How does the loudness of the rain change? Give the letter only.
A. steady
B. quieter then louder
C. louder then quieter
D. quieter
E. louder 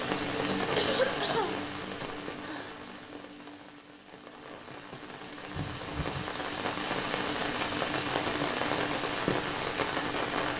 B.